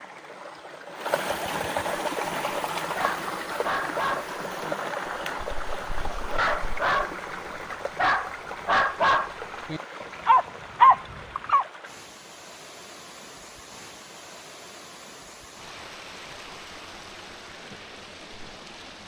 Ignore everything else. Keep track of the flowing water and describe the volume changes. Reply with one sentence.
The loudness of the flowing water goes down.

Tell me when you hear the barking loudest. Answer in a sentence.
The loudest moment of the barking is at 11 seconds.